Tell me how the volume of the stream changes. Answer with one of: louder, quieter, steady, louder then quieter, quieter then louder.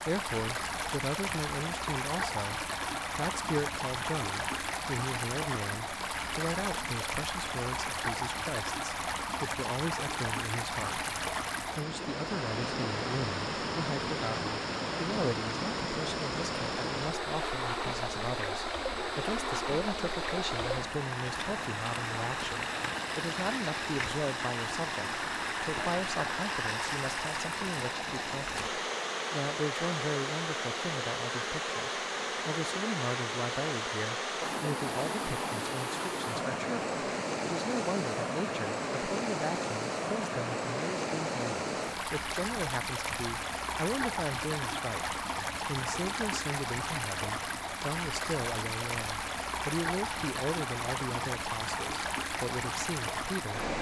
steady.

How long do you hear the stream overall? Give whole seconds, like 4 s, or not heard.
54 s.